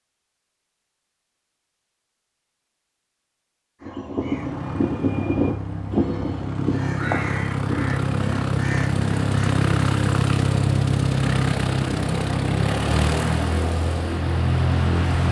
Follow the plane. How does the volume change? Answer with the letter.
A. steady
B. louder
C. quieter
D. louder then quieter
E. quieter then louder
B.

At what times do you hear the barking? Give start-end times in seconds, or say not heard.
not heard.